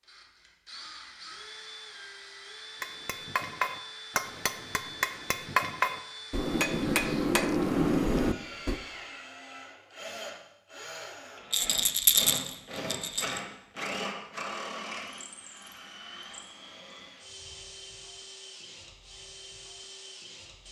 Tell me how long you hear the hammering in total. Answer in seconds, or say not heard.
6 s.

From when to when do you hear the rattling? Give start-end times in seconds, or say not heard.
11.5-13.4.